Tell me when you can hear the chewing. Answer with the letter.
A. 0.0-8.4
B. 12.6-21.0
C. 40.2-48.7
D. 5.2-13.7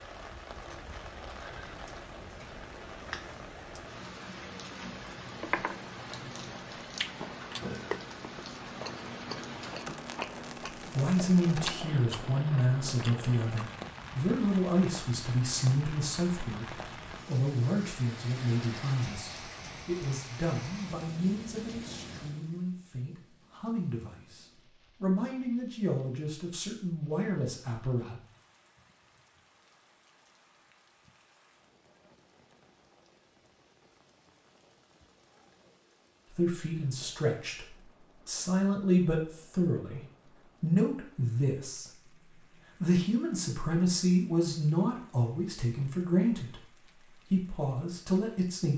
D.